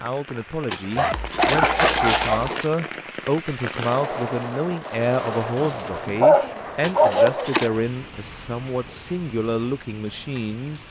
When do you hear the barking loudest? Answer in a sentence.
The loudest moment of the barking is at 6 seconds.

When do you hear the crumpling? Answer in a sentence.
You can hear the crumpling from 0.7 to 2.7 s and from 6.8 to 7.7 s.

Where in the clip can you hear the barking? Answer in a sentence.
The barking can be heard from 0.9 to 2.5 s and from 5.5 to 7.5 s.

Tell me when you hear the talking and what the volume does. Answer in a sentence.
You can hear the talking from 0.0 to 10.8 s, at a steady volume.